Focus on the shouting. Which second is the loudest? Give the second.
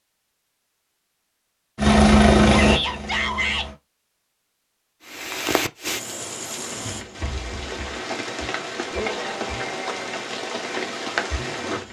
3 s.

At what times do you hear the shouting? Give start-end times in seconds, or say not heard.
2.5-3.7, 8.9-10.2.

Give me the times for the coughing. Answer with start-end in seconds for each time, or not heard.
not heard.